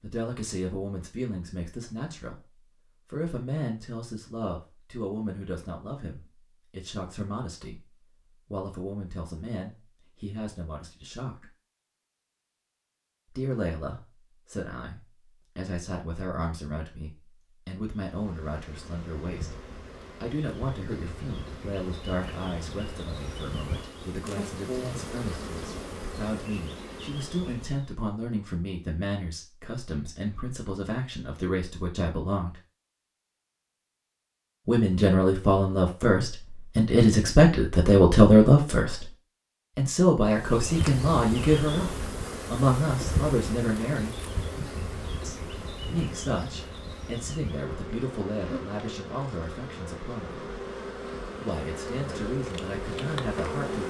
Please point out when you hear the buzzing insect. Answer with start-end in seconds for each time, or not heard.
17.9-27.9, 40.2-53.8.